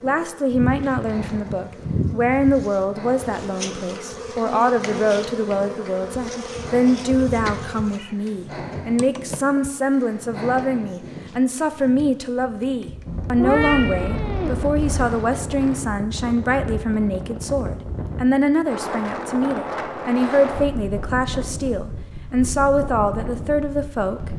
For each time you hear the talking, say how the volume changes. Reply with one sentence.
The talking can be heard from 0.0 to 24.3 s, at a steady volume.